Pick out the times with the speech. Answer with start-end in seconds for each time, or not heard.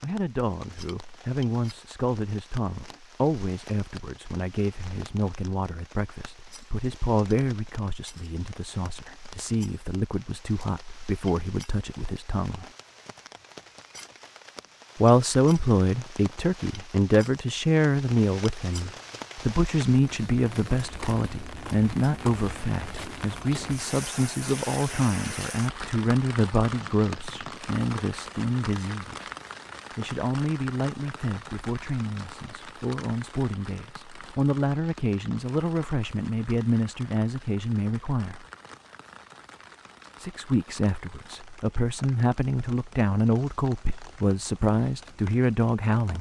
0.0-12.7, 15.0-29.3, 29.9-38.5, 40.1-46.1.